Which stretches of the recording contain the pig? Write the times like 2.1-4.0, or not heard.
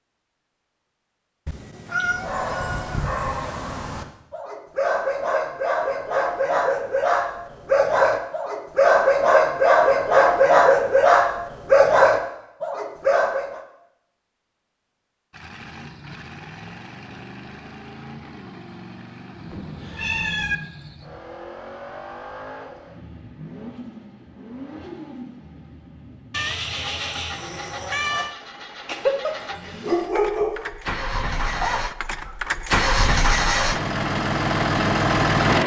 not heard.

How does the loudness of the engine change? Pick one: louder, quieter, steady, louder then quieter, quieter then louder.
louder.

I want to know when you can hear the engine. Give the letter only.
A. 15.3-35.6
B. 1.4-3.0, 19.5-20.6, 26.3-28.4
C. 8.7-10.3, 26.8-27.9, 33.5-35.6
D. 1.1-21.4
A.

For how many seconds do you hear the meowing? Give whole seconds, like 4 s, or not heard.
5 s.